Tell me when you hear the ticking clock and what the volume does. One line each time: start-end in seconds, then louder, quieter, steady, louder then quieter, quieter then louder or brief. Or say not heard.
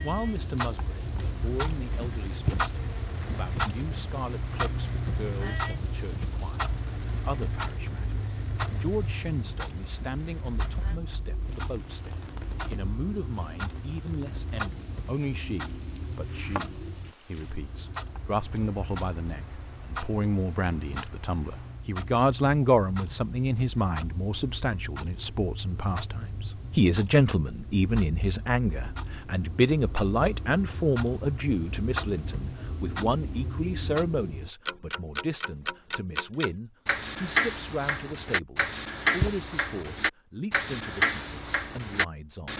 0.0-42.5 quieter then louder.